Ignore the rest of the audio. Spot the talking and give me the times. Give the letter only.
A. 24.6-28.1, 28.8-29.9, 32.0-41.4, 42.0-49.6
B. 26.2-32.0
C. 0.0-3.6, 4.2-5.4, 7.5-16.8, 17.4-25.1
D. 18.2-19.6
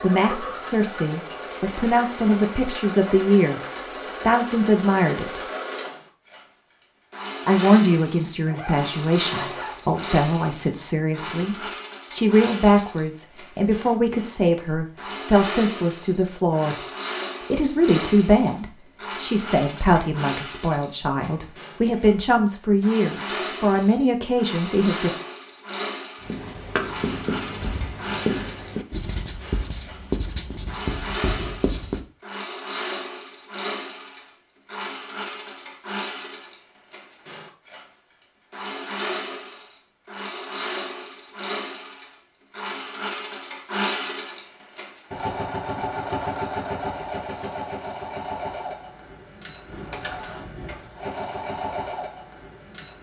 C.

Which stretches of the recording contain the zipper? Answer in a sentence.
You can hear the zipper from 8.4 to 9.8 s.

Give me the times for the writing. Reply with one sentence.
The writing can be heard from 26.2 to 32.0 s.